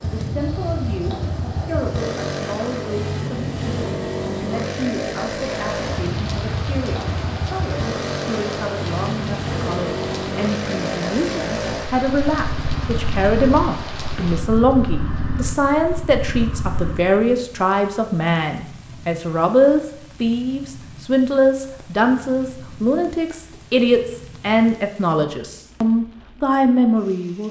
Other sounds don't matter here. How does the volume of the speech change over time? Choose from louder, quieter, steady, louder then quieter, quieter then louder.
louder.